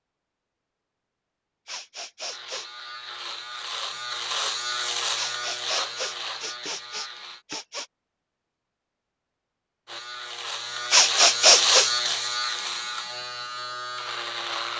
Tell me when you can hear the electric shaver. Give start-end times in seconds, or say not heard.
2.2-7.5, 9.8-14.7.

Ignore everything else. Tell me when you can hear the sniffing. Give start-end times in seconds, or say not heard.
1.6-2.6, 5.2-7.8, 10.9-11.9.